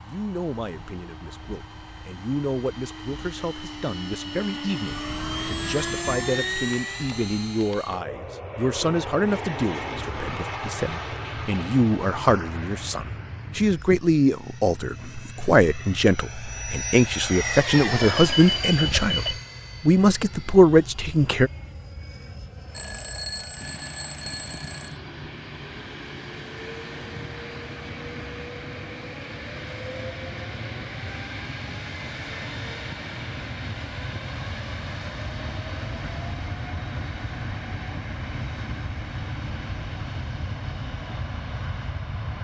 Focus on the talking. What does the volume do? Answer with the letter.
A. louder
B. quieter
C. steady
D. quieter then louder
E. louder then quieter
A.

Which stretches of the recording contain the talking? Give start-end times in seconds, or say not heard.
0.0-21.5.